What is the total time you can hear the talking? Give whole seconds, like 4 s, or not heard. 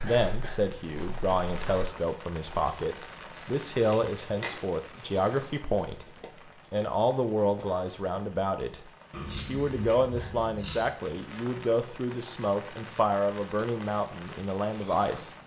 15 s.